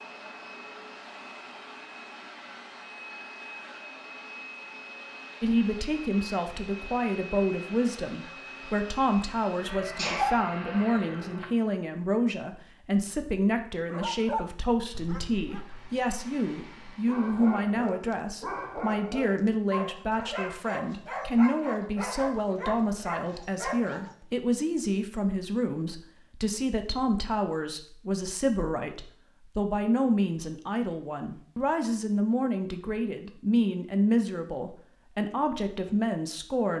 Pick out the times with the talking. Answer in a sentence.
The talking can be heard from 5.4 to 36.7 s.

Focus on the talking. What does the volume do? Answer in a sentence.
The volume of the talking stays about the same.